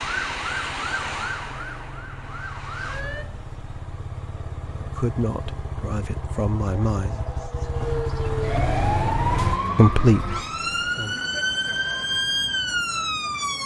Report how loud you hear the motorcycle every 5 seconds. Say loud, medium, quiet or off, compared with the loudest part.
medium, loud, off.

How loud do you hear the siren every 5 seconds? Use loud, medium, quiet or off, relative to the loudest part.
medium, loud, loud.